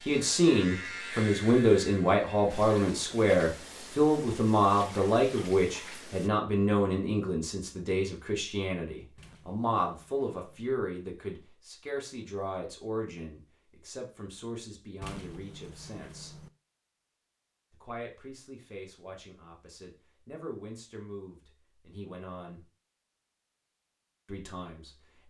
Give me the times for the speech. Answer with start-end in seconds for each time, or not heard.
0.1-16.4, 17.7-22.6, 24.2-25.2.